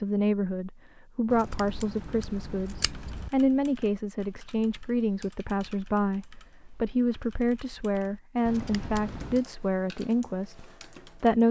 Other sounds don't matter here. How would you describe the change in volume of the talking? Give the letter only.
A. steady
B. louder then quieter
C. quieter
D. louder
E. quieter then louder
A.